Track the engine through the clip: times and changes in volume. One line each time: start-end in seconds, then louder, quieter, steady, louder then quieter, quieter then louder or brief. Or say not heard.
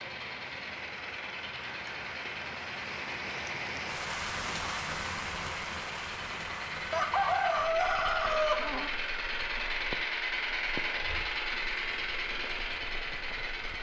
0.0-13.7 louder.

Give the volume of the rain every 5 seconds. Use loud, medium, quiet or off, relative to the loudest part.
loud, loud, medium.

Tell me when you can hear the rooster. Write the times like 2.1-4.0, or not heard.
6.9-8.9.